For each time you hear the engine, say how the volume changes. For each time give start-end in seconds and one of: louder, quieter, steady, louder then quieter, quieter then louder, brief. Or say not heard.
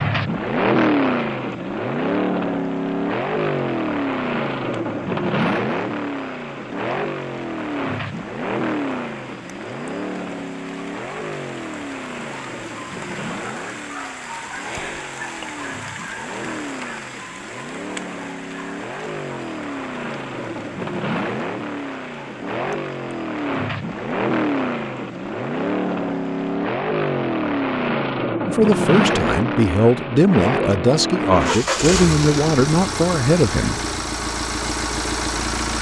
0.0-35.7 quieter then louder.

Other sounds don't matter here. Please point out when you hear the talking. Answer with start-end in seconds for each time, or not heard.
28.4-33.8.